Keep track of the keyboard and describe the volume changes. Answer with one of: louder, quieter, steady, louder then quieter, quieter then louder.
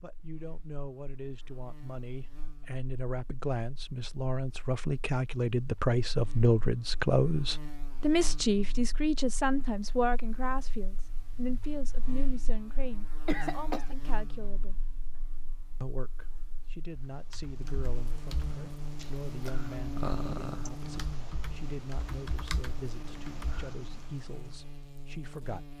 louder then quieter.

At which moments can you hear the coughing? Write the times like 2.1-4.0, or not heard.
13.2-13.9.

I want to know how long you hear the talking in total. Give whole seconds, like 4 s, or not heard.
25 s.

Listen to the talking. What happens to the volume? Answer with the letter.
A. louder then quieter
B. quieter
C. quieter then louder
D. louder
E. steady
A.